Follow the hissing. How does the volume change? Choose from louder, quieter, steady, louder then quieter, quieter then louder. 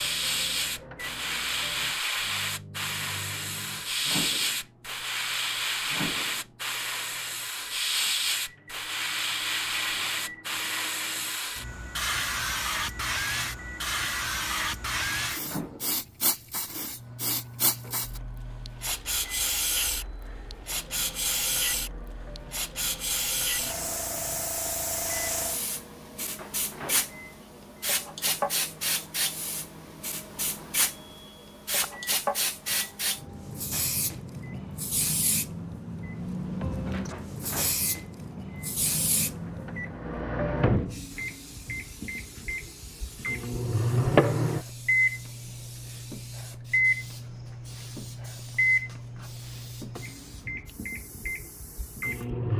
quieter.